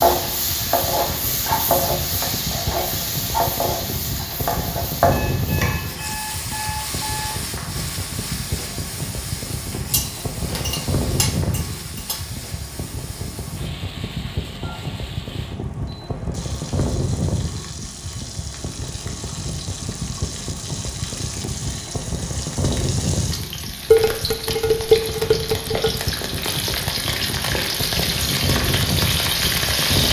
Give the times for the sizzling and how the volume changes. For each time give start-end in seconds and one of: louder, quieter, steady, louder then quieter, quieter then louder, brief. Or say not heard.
0.0-30.0 quieter then louder.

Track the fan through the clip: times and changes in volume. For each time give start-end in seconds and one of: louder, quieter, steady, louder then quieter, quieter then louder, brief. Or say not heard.
0.0-30.0 steady.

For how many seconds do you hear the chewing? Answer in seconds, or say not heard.
not heard.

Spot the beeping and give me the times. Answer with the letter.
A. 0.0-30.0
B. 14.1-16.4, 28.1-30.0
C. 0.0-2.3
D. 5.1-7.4
D.